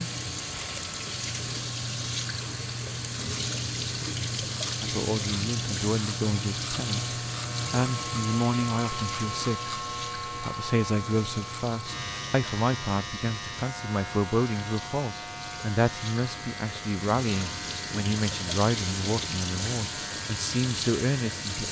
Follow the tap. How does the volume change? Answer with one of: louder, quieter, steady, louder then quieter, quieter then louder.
quieter then louder.